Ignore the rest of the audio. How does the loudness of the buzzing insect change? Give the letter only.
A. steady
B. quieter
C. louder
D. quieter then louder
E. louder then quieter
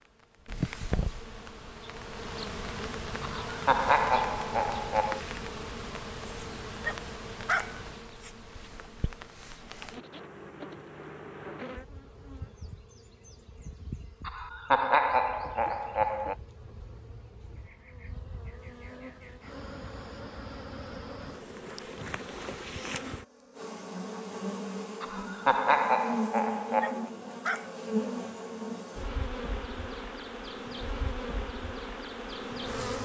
D.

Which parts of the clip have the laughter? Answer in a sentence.
You can hear the laughter from 3.2 to 5.2 s, from 14.2 to 16.4 s and from 25.0 to 27.1 s.